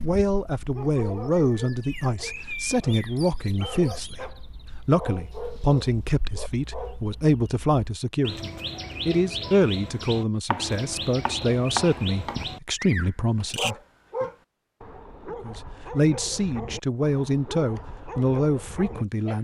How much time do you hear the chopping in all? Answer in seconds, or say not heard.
2 s.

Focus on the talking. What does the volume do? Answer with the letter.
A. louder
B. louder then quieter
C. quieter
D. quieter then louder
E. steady
E.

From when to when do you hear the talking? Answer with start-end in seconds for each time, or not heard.
0.0-14.2, 15.3-19.4.